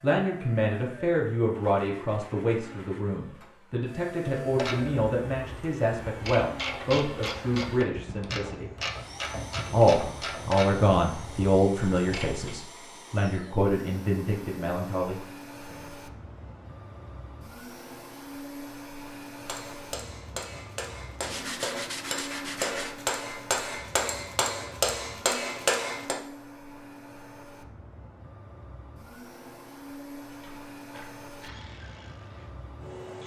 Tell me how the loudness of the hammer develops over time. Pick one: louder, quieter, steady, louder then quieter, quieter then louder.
louder.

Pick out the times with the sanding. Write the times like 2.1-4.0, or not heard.
1.5-3.1, 21.2-23.0.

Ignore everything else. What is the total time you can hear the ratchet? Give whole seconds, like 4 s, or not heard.
11 s.